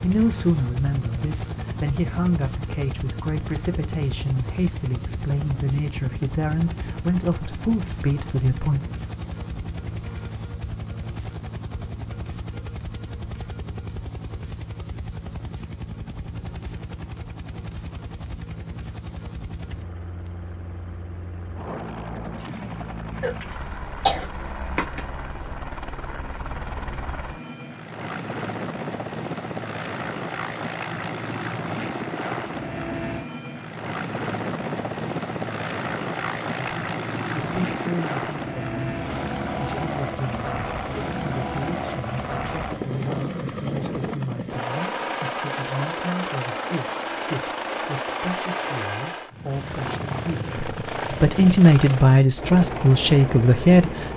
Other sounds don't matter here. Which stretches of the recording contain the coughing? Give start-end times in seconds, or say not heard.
23.2-25.0.